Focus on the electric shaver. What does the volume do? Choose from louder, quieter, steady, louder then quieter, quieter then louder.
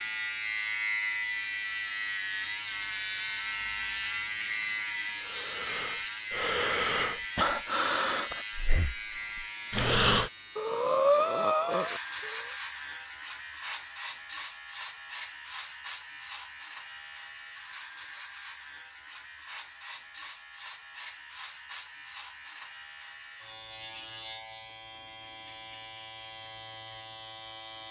quieter.